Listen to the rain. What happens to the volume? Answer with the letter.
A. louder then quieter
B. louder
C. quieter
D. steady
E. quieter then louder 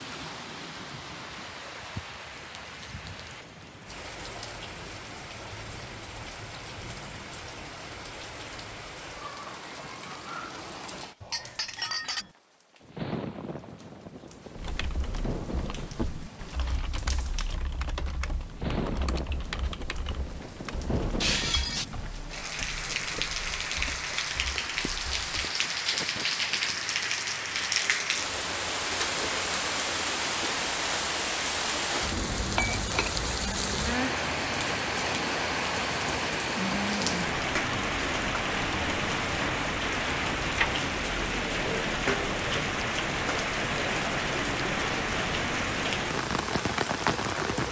B.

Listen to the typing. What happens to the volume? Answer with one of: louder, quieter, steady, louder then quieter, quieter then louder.
quieter.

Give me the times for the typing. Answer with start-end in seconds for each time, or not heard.
14.6-25.5.